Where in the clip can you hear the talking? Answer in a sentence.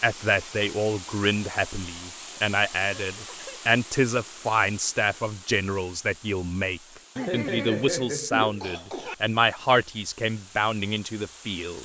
You can hear the talking from 0.0 to 11.8 s.